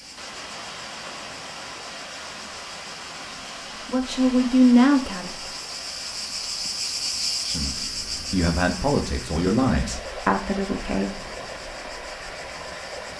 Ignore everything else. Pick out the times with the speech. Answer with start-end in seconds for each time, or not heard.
3.9-5.5, 7.5-11.1.